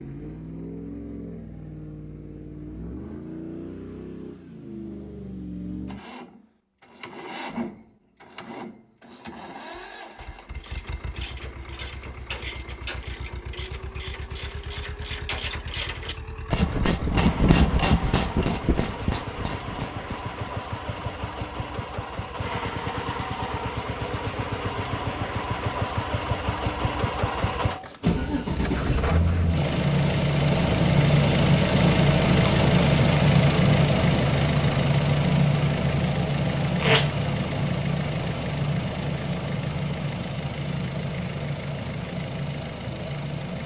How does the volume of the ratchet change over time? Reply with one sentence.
The loudness of the ratchet goes up, then down.